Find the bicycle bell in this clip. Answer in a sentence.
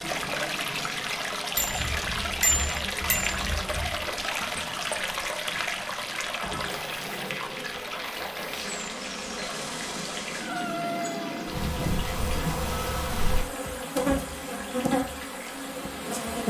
The bicycle bell can be heard from 1.6 to 4.0 s and from 11.5 to 12.2 s.